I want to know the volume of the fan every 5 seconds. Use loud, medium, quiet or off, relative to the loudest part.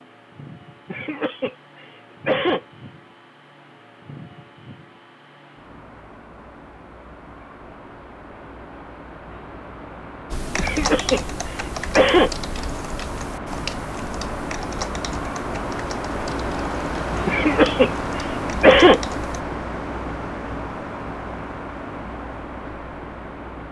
quiet, quiet, medium, loud, medium.